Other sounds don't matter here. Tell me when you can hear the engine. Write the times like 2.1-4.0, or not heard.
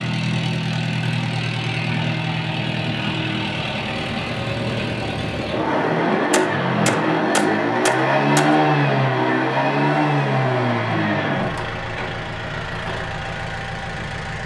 0.0-14.4.